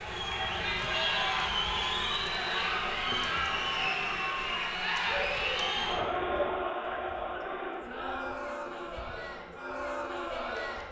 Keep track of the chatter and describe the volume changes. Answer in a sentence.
The volume of the chatter goes down.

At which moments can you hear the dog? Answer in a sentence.
You can hear the dog from 5.0 to 6.7 s.